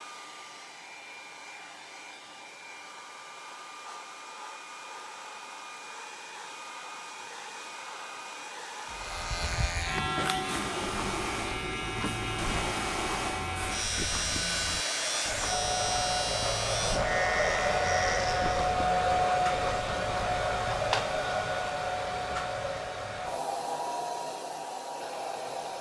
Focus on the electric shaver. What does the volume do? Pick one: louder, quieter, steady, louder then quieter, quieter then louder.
steady.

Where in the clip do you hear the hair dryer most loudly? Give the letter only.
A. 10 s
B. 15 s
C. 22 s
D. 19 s
D.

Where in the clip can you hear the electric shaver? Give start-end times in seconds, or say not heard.
8.8-18.8.